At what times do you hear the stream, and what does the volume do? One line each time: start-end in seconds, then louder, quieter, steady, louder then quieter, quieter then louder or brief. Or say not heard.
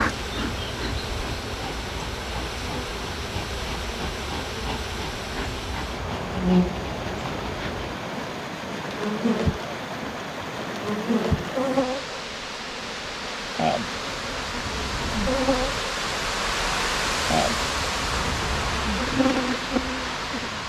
0.0-20.6 louder.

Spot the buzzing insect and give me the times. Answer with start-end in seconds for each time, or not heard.
0.0-20.6.